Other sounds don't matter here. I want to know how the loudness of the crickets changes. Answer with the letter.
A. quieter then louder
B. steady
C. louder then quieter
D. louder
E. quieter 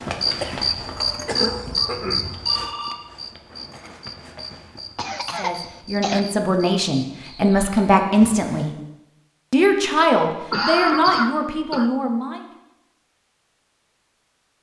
E.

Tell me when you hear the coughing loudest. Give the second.
11 s.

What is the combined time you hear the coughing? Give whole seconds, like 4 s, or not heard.
5 s.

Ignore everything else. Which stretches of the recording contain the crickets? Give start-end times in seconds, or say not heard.
0.0-8.0.